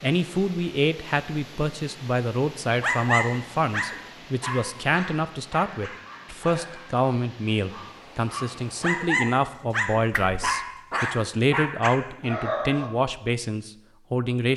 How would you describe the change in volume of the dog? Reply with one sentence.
The loudness of the dog goes down, then up.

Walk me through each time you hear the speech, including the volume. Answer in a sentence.
The speech can be heard from 0.0 to 14.5 s, at a steady volume.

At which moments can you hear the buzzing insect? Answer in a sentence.
You can't hear the buzzing insect here.